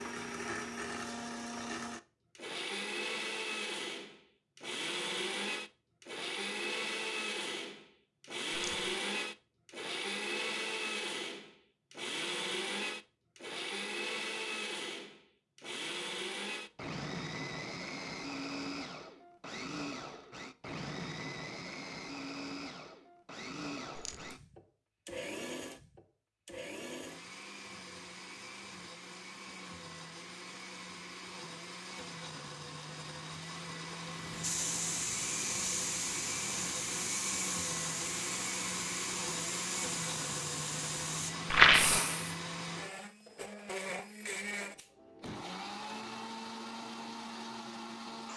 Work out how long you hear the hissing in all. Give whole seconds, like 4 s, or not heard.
8 s.